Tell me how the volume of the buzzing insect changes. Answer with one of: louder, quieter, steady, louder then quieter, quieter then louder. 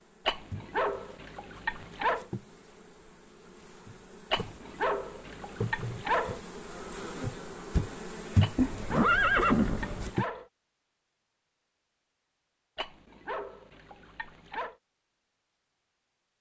louder.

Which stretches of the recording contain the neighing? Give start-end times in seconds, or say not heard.
8.6-10.1.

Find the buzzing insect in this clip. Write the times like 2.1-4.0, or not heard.
0.0-10.2.